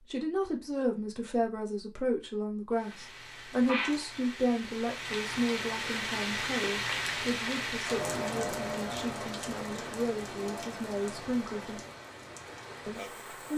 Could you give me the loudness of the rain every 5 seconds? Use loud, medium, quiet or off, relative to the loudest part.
medium, loud, medium.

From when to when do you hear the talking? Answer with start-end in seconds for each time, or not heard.
0.0-11.8, 12.8-13.5.